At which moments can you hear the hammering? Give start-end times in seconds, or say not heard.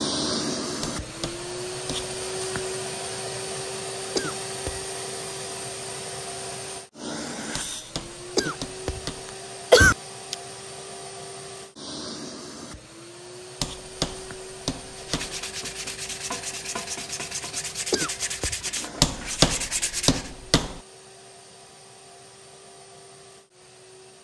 0.8-2.1, 7.5-9.3, 13.6-15.4, 19.0-20.8.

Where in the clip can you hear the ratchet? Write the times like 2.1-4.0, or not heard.
not heard.